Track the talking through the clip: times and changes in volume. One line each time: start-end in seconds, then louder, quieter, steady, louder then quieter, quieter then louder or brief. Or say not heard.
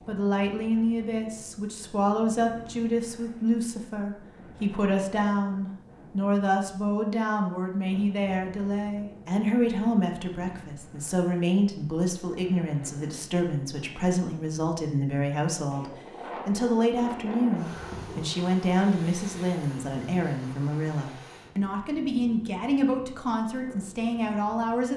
0.1-24.9 steady.